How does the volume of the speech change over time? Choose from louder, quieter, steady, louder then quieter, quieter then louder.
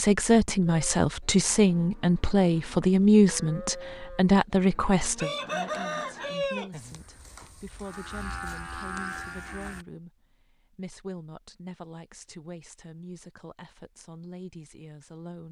quieter.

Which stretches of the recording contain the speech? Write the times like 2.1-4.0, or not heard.
0.0-15.4.